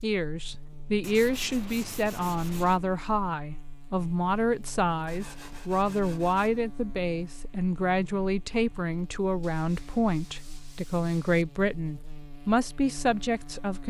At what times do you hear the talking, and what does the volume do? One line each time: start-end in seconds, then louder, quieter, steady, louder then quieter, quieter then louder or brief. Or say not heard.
0.0-13.8 steady.